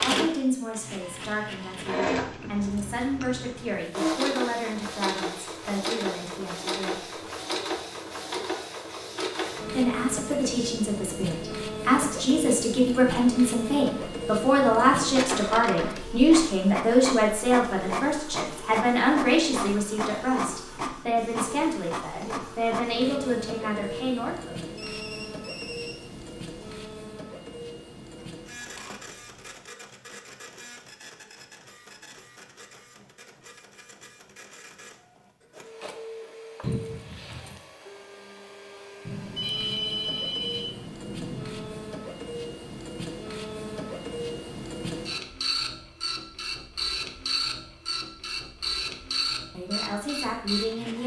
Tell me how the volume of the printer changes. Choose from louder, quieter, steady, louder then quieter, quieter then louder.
quieter then louder.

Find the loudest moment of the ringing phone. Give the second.
40 s.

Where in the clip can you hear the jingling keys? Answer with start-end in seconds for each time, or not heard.
2.5-3.6, 28.4-29.6, 36.6-37.6.